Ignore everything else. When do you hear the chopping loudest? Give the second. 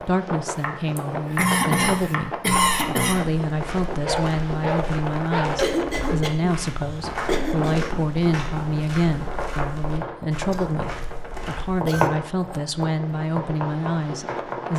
12 s.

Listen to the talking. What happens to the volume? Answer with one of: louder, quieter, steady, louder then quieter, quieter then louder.
steady.